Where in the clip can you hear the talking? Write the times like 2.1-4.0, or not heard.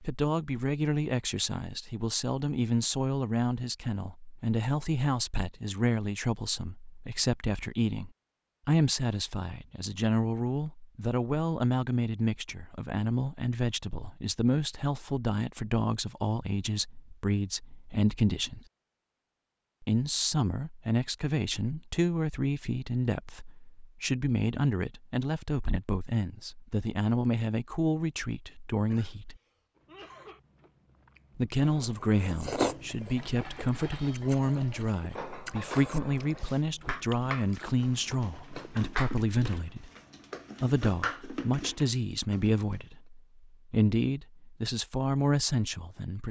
0.0-18.6, 19.8-29.4, 31.4-39.9, 40.6-46.2.